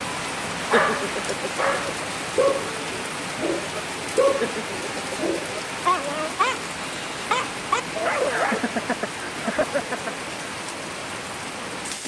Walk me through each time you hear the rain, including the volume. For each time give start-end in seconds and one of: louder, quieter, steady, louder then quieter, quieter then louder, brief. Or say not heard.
0.0-12.0 steady.